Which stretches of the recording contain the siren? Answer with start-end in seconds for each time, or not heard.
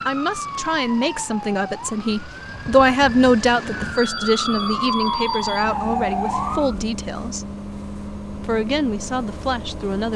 0.0-6.8.